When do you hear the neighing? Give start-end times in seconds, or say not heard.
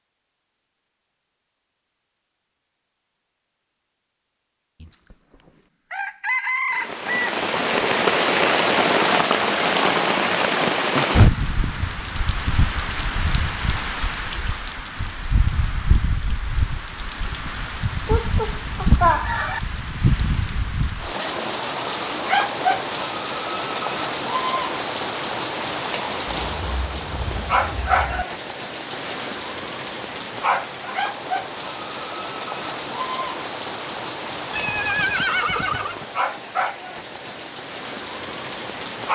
34.5-36.0.